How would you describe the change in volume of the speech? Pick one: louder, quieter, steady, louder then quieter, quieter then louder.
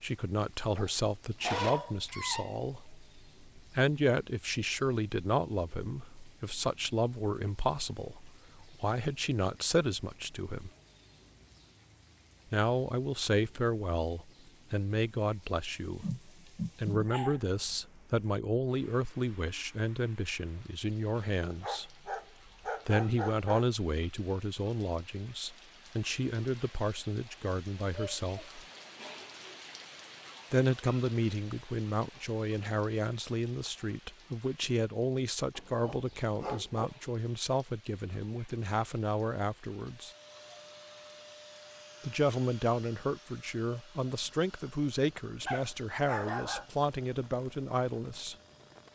steady.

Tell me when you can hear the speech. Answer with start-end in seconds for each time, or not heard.
0.0-10.7, 12.5-21.9, 22.9-28.6, 30.5-40.1, 42.0-48.4.